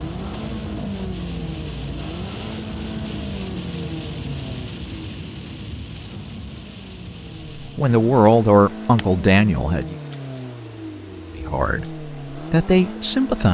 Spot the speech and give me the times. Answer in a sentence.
The speech can be heard from 7.5 to 9.9 s and from 11.3 to 13.4 s.